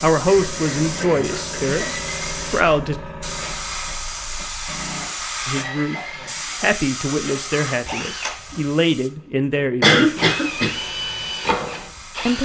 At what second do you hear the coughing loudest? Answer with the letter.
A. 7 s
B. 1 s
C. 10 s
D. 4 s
C.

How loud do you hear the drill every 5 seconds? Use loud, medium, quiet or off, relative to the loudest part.
medium, medium, loud.